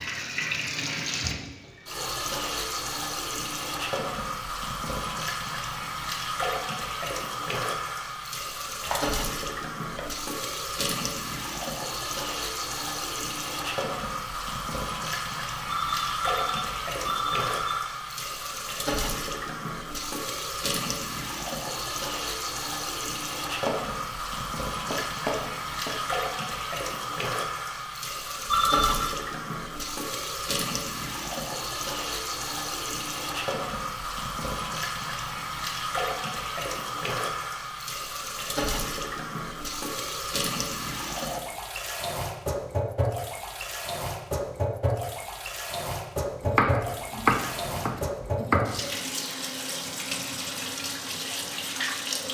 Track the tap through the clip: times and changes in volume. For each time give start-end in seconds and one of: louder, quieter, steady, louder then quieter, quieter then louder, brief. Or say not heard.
0.0-52.2 steady.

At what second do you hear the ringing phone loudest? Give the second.
29 s.